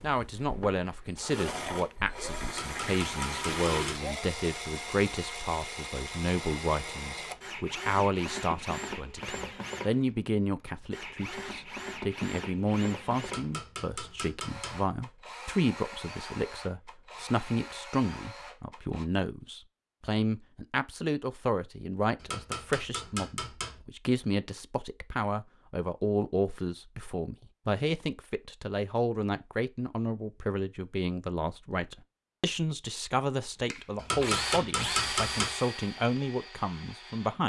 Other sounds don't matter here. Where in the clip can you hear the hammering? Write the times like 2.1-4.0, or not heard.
2.5-4.1, 13.2-14.8, 22.1-23.8, 34.0-35.5.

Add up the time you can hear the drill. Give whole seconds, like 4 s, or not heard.
23 s.